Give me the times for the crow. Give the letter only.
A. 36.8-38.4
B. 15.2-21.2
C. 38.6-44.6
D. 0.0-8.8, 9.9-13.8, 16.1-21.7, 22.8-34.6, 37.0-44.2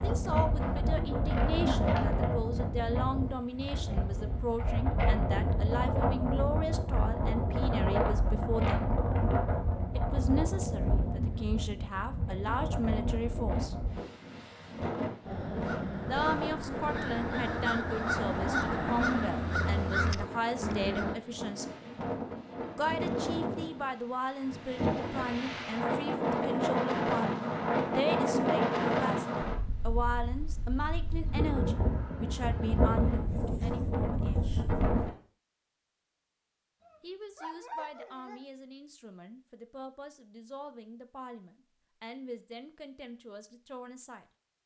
B.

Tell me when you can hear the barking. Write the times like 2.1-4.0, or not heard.
36.8-38.4.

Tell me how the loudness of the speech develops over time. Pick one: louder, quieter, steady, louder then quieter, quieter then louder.
quieter.